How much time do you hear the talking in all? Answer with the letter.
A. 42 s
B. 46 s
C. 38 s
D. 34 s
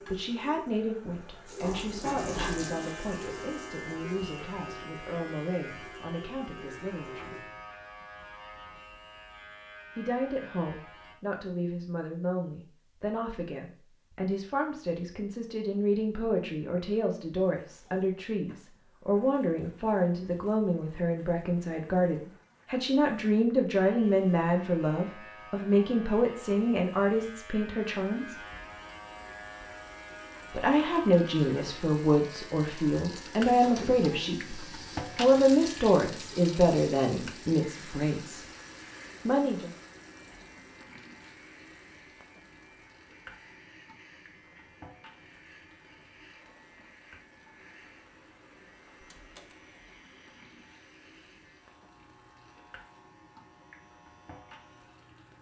D.